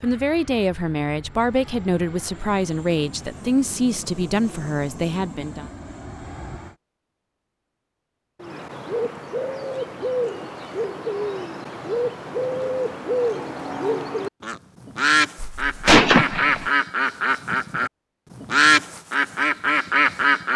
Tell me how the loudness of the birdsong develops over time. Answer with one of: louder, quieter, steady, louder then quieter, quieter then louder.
louder.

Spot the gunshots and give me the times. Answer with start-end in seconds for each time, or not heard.
15.4-16.7.